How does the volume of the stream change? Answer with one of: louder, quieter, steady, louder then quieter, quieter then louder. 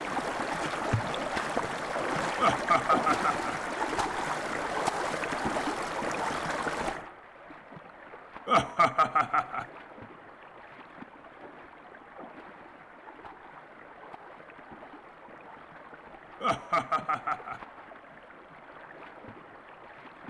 quieter.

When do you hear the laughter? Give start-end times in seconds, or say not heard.
2.4-3.5, 8.4-9.7, 16.4-17.6.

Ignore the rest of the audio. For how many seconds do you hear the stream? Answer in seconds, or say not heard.
20 s.